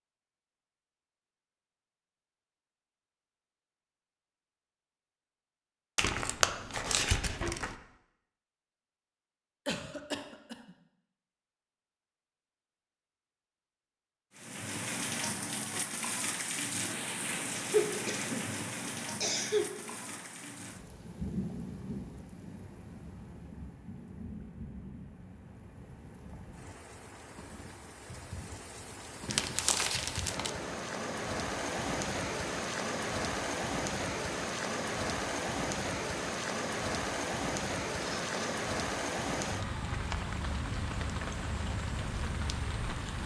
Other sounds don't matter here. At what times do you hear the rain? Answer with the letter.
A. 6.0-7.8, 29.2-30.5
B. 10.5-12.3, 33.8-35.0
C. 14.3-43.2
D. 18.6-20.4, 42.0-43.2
C.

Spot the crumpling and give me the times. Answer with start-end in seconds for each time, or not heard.
6.0-7.8, 29.2-30.5.